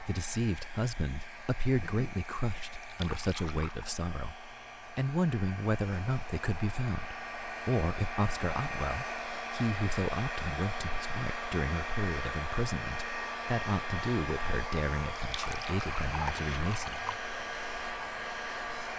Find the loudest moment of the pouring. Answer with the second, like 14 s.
16 s.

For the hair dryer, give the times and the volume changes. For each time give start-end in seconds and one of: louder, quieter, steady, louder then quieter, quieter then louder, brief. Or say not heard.
0.0-18.9 louder.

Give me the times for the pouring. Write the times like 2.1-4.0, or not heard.
2.8-3.9, 15.2-17.2.